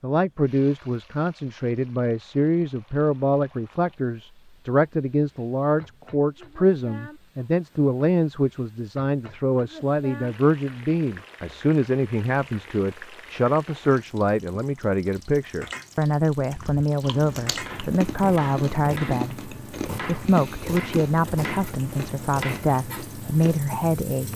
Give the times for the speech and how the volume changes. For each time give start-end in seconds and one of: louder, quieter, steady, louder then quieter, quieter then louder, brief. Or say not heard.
0.0-24.3 steady.